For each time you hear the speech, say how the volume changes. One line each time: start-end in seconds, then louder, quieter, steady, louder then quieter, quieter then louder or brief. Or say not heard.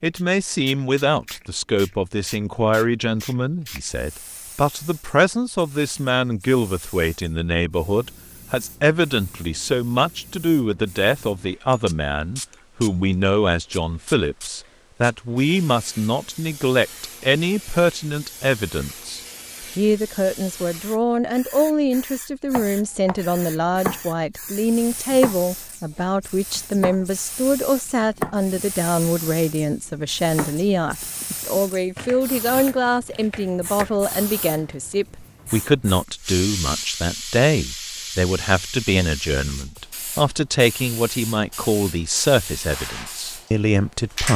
0.0-44.3 steady.